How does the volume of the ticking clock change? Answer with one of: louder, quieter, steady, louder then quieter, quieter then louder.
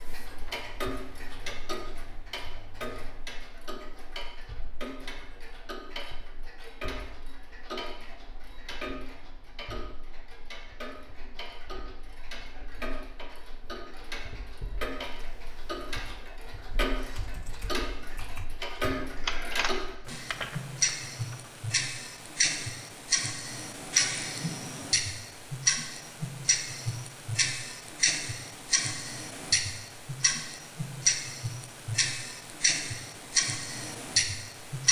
louder.